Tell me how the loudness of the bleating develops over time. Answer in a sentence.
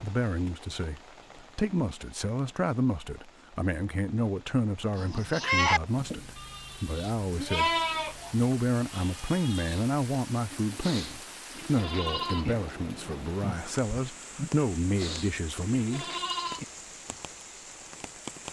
The loudness of the bleating goes down, then up.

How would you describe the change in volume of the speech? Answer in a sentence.
The volume of the speech stays about the same.